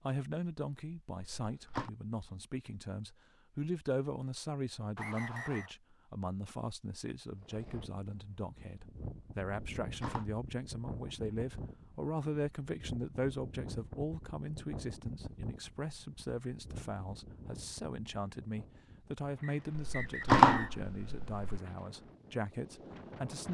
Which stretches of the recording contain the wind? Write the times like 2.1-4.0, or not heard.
7.3-23.4.